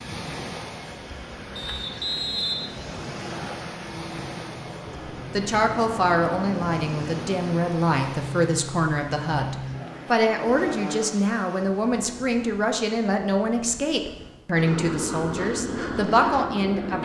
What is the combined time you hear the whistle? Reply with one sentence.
The whistle can be heard for 2 seconds in total.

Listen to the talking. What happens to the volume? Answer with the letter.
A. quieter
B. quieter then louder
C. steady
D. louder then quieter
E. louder
C.